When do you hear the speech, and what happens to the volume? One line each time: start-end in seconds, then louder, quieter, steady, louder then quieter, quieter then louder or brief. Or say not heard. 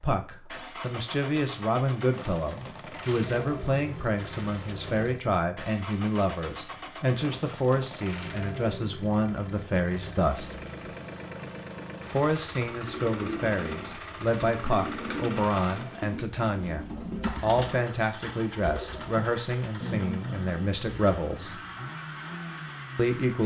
0.0-10.6 steady
12.1-21.6 steady
22.9-23.4 brief.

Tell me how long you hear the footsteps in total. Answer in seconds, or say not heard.
not heard.